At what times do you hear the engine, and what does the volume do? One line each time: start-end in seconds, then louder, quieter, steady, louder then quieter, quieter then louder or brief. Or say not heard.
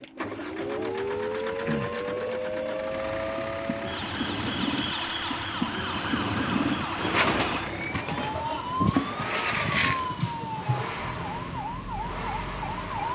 0.0-13.1 steady.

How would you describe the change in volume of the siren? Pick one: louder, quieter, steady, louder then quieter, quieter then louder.
steady.